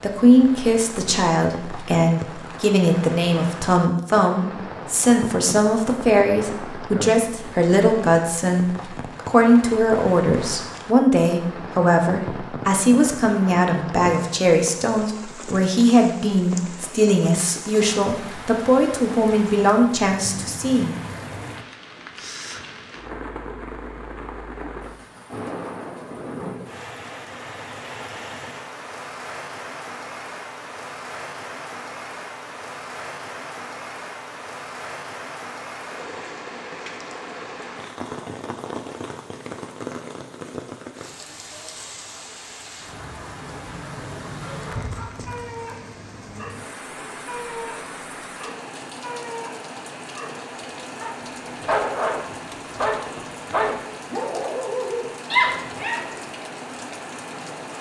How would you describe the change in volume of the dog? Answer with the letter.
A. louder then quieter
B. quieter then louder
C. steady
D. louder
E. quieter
D.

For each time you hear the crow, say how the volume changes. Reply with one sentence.
You can't hear the crow here.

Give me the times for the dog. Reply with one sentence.
You can hear the dog from 44.3 to 56.1 s.